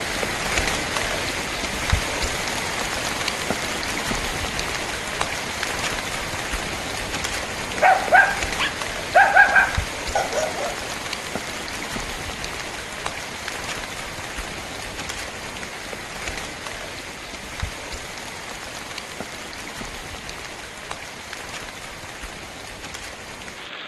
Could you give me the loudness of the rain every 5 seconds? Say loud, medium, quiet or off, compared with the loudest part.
loud, loud, medium, medium, medium.